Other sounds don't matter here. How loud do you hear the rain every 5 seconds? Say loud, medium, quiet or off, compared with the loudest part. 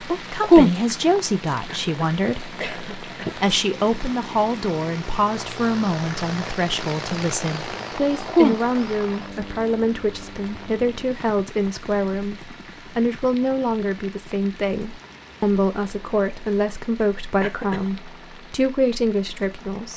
loud, loud, quiet, quiet.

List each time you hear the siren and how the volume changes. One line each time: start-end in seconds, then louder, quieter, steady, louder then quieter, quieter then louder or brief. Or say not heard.
not heard.